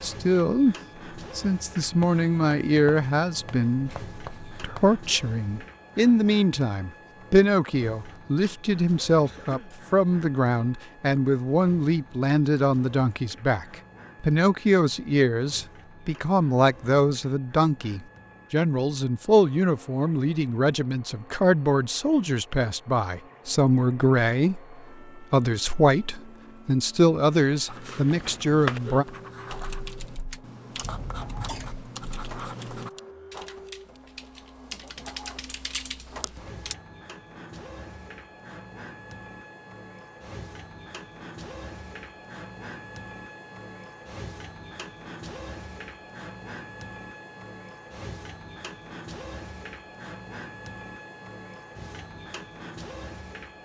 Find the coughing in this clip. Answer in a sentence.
The coughing can be heard from 9.2 to 9.8 s and from 30.8 to 31.8 s.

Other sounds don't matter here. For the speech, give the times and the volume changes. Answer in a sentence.
You can hear the speech briefly from 0.0 to 0.8 s; and from 1.4 to 29.1 s, at a steady volume.